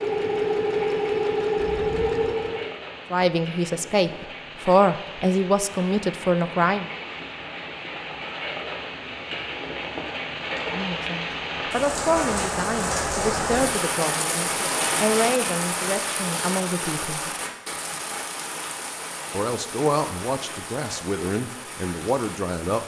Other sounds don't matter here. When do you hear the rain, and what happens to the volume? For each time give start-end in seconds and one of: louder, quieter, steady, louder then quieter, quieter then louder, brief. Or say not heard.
0.0-22.8 louder then quieter.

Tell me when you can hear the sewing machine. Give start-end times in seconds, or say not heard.
0.0-2.8.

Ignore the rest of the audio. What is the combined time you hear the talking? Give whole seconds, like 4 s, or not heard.
14 s.